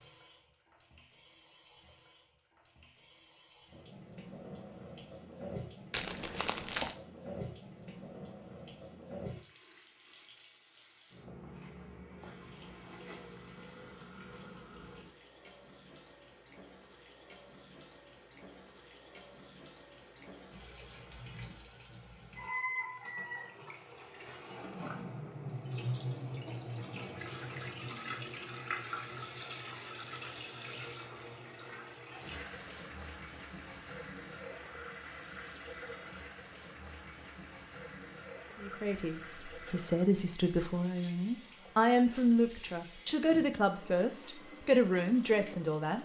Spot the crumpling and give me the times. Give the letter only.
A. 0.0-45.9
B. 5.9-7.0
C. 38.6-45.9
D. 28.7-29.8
B.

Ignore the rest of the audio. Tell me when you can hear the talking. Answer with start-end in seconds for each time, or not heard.
38.6-45.9.